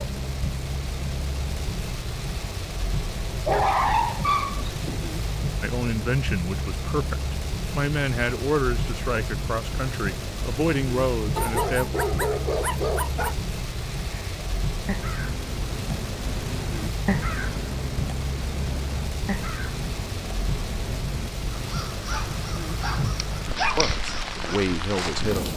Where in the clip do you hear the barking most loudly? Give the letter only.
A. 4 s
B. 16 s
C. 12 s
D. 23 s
A.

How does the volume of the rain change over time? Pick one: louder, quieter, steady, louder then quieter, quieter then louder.
steady.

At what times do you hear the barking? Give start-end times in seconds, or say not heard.
3.4-5.1, 11.3-13.3, 22.1-23.9.